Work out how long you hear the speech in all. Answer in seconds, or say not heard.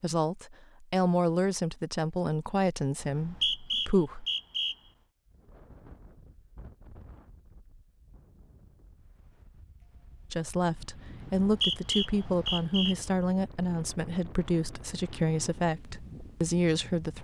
11 s.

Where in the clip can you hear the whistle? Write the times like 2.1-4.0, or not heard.
3.0-4.8, 11.2-12.9.